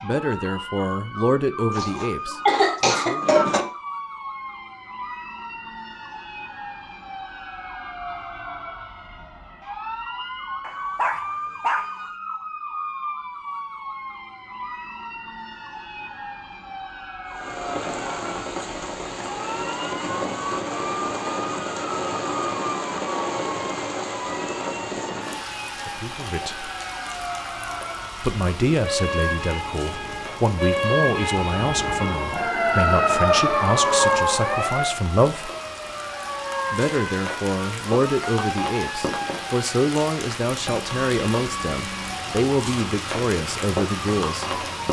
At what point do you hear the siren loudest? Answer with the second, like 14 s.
34 s.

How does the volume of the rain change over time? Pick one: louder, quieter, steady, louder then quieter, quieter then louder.
quieter then louder.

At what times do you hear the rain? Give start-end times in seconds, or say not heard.
17.2-44.8.